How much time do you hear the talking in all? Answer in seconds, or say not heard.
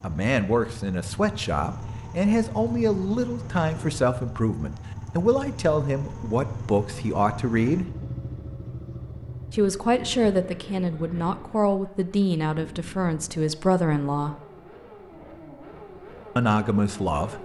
14 s.